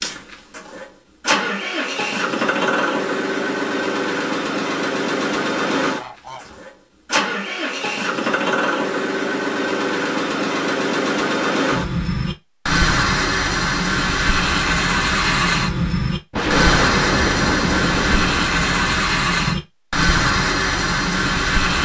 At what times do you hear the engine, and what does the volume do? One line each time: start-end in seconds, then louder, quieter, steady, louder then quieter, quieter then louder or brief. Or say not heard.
0.0-21.7 steady.